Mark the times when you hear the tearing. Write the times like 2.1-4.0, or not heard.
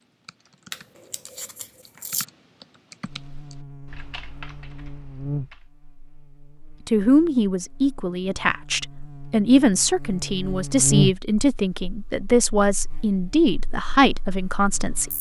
0.7-2.2.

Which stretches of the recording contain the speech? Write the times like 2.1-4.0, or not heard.
6.8-15.1.